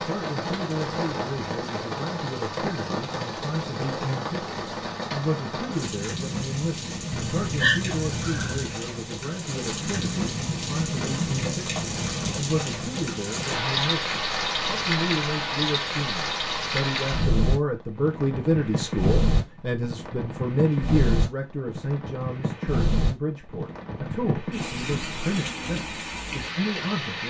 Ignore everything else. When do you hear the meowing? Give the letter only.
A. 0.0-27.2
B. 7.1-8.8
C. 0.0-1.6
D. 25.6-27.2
B.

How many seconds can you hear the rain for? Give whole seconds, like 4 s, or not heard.
27 s.